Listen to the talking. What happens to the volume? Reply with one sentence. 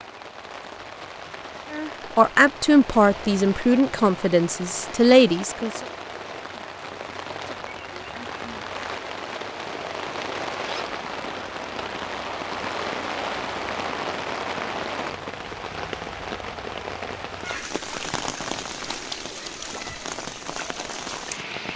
The loudness of the talking goes down, then up.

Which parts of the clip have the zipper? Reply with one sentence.
The zipper can be heard from 10.6 to 11.0 s.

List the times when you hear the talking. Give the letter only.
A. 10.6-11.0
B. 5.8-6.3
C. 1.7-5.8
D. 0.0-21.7
C.